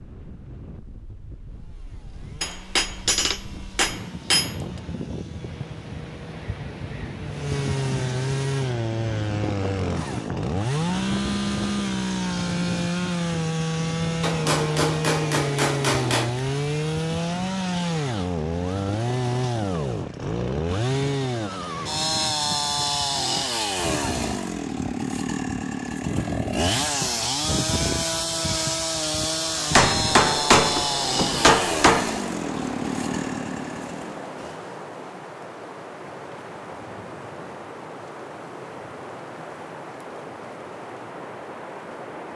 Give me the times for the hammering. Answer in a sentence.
You can hear the hammering from 2.4 to 4.5 s, from 14.2 to 16.4 s and from 29.8 to 32.1 s.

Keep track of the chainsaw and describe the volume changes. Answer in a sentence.
The volume of the chainsaw goes up.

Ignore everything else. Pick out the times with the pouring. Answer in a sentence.
You can't hear the pouring here.